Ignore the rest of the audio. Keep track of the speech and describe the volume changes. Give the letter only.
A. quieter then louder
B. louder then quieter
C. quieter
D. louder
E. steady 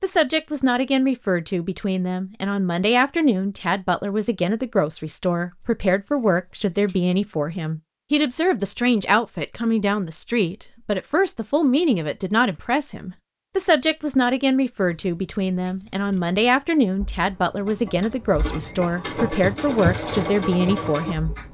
E.